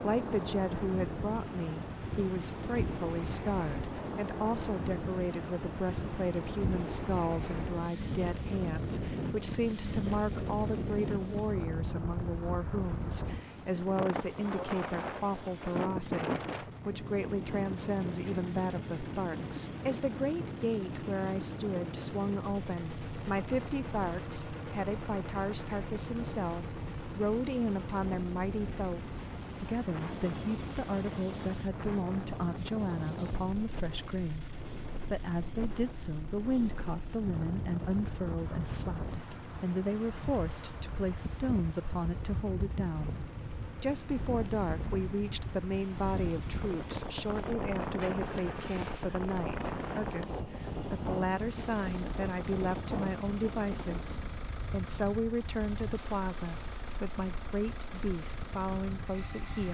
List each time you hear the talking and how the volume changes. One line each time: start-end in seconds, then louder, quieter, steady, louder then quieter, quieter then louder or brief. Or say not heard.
0.0-59.7 steady.